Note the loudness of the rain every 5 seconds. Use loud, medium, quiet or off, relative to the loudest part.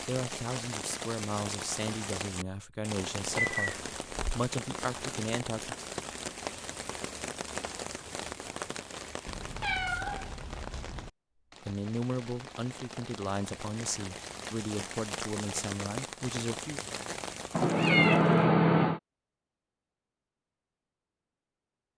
loud, loud, medium, loud, off.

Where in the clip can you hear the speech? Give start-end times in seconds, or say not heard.
0.1-5.8, 11.6-16.8.